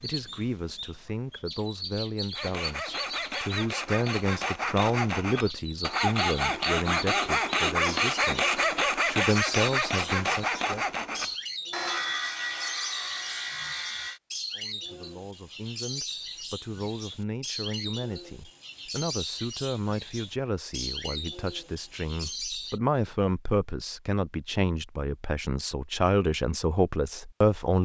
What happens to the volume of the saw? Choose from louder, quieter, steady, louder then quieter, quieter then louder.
louder then quieter.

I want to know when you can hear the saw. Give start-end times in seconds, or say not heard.
2.4-14.2.